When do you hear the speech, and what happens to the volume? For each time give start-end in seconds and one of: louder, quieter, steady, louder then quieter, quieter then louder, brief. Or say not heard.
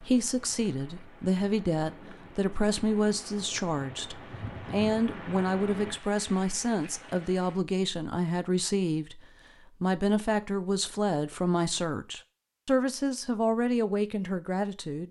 0.0-15.0 steady.